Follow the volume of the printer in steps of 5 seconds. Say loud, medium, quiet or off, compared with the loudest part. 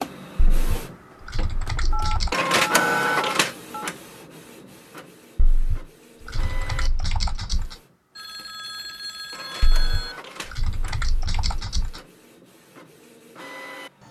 loud, quiet, quiet.